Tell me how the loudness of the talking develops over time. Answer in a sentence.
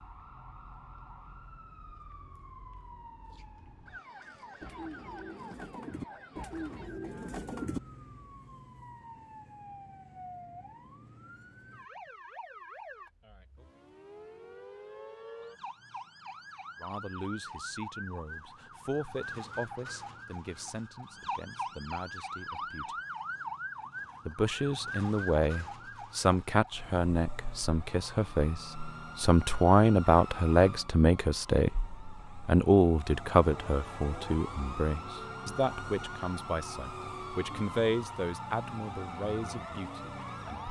The volume of the talking goes up, then down.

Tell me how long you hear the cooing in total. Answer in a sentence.
The cooing can be heard for 3 seconds in total.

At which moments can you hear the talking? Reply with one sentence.
You can hear the talking from 16.8 to 22.9 s, from 24.2 to 31.8 s and from 32.5 to 40.6 s.